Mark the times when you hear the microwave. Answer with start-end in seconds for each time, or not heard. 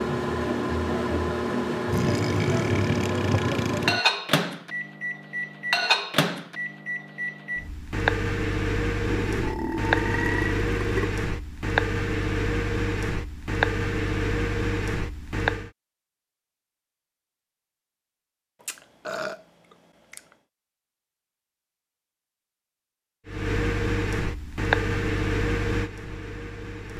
0.0-15.7, 23.2-26.9.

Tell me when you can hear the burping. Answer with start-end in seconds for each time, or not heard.
1.9-4.0, 9.1-11.1, 18.6-20.4.